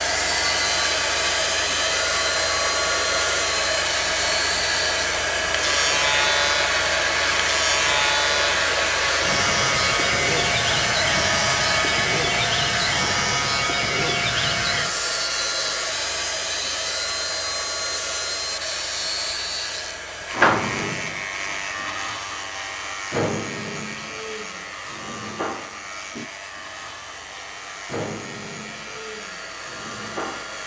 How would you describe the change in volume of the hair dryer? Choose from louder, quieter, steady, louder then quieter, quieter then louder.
quieter.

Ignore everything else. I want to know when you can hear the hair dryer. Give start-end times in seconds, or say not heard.
0.0-30.6.